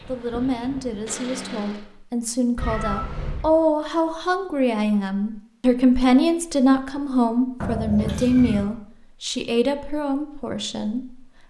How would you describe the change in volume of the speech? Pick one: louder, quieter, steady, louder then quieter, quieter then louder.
louder then quieter.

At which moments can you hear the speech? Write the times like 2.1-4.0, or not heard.
0.1-11.4.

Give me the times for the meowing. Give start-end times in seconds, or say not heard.
2.5-3.5, 7.6-8.7.